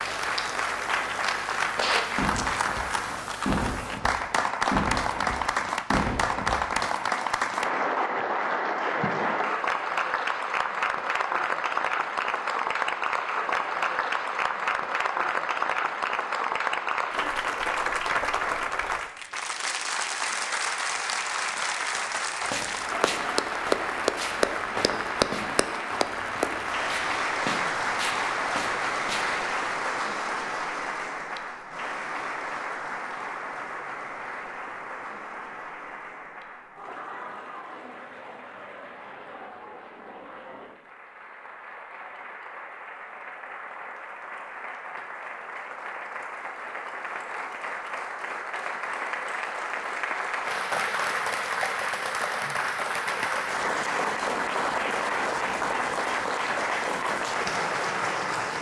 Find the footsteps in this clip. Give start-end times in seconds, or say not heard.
22.4-29.4.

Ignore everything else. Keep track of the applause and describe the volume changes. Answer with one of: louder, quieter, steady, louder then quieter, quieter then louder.
quieter then louder.